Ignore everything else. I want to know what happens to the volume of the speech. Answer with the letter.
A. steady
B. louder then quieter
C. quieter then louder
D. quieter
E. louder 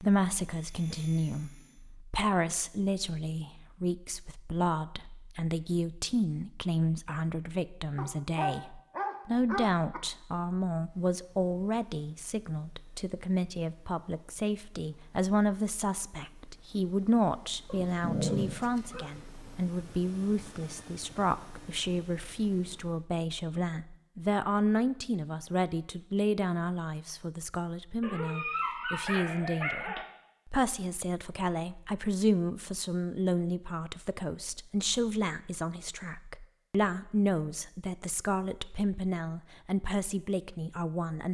A.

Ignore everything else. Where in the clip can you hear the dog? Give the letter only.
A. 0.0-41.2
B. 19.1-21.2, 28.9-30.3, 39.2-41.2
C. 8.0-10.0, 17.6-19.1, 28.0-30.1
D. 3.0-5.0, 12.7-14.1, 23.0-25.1
C.